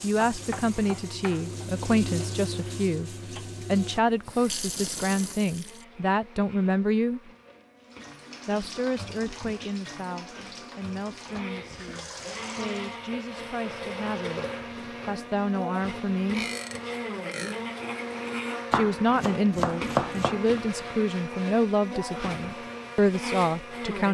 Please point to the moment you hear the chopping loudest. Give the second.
20 s.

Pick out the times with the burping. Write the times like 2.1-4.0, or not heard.
16.3-17.6.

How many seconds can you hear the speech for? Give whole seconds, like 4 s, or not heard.
20 s.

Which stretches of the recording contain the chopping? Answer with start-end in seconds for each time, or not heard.
0.3-1.6, 18.7-20.4.